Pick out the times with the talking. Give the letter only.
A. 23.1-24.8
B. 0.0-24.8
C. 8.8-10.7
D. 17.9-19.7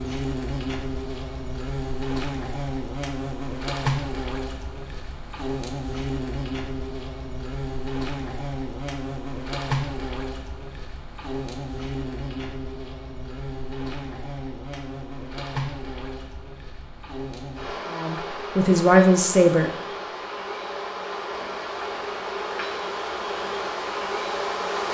D.